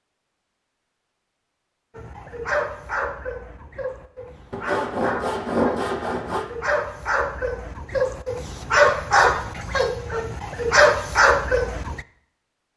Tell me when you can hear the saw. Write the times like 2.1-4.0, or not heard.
4.5-6.5.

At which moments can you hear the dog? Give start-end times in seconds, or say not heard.
1.9-12.0.